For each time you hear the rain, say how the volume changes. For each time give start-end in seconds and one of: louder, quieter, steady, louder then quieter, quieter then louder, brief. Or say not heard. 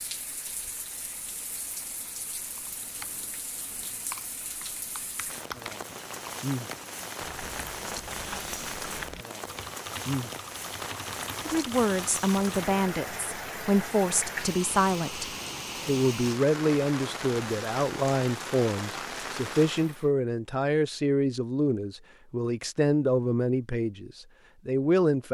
0.0-20.1 louder.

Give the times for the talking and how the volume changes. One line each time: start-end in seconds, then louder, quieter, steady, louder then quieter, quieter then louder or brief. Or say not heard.
11.4-25.3 steady.